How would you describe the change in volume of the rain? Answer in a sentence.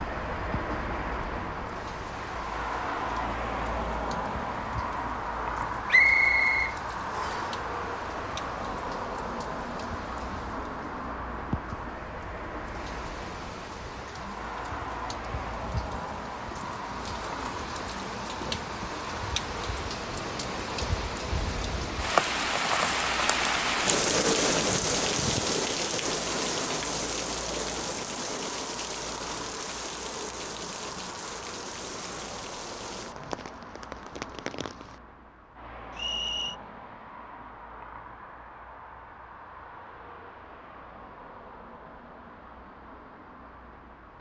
The loudness of the rain goes up, then down.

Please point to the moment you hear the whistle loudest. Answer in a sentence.
The loudest moment of the whistle is at 6 seconds.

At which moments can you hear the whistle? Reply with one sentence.
You can hear the whistle from 5.9 to 7.5 s and from 36.0 to 36.5 s.